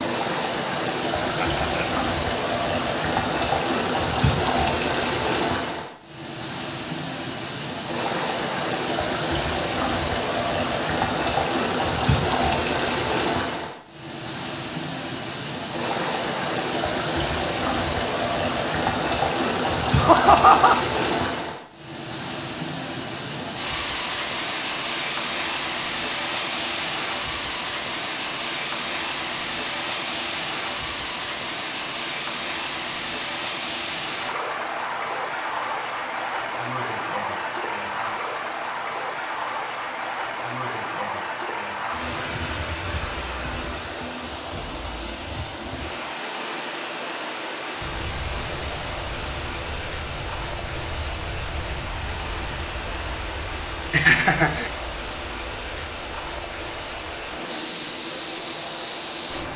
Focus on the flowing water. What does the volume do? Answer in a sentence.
The loudness of the flowing water goes down.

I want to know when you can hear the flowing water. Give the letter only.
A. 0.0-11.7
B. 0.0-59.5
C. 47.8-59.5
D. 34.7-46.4
B.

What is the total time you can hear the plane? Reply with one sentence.
The plane can be heard for 12 seconds in total.